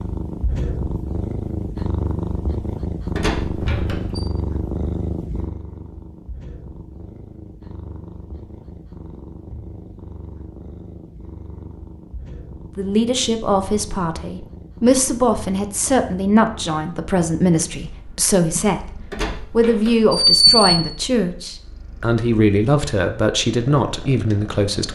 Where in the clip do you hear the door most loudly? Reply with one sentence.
The loudest moment of the door is at 20 seconds.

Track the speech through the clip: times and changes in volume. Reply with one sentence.
The speech can be heard from 12.8 to 24.8 s, at a steady volume.